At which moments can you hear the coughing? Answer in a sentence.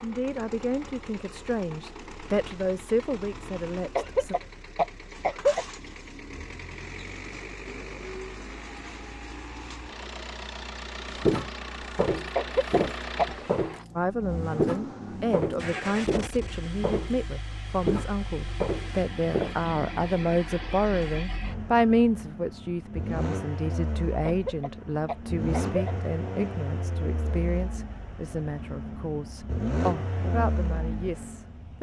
You can hear the coughing from 4.0 to 5.7 s, from 12.3 to 13.2 s and from 24.2 to 25.9 s.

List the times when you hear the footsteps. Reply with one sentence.
The footsteps can be heard from 11.1 to 19.6 s.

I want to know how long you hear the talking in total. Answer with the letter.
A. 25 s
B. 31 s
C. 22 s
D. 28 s
C.